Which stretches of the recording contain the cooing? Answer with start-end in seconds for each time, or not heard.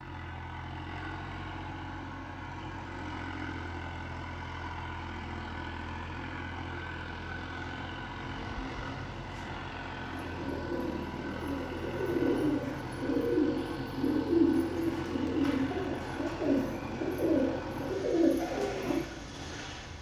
8.2-19.1.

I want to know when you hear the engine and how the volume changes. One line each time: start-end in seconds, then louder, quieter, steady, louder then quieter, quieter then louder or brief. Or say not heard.
0.0-19.9 steady.